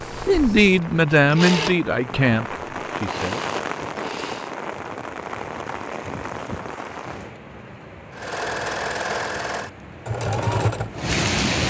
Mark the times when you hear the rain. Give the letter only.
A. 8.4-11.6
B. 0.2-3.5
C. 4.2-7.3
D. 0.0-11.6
D.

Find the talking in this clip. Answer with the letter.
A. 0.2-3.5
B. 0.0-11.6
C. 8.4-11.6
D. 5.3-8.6
A.